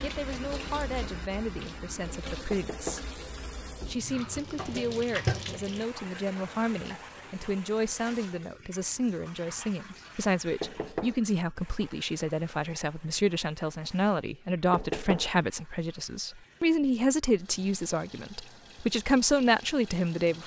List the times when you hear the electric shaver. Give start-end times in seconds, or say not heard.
not heard.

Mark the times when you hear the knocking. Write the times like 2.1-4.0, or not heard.
2.5-3.0, 10.6-11.2, 14.7-15.3.